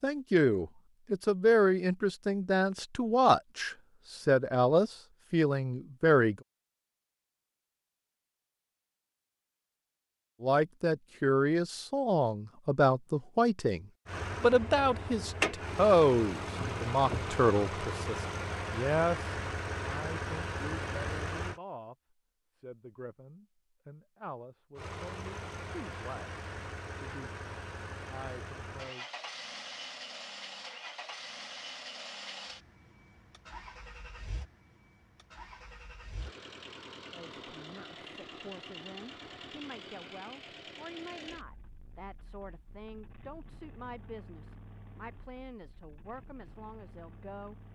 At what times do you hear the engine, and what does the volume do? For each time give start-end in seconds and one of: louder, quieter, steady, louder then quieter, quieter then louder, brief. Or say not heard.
14.1-21.6 steady
24.8-47.7 quieter.